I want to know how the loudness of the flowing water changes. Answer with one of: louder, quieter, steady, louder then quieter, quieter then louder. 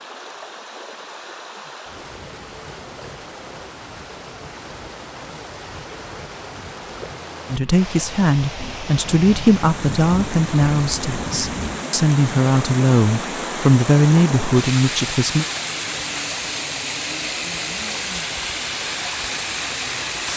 louder.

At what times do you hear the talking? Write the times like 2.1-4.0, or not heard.
7.5-15.4.